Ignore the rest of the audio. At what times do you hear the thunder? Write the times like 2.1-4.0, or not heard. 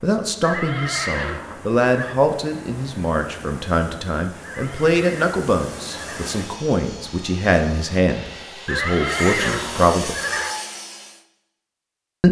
not heard.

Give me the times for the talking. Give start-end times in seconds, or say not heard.
0.0-10.2.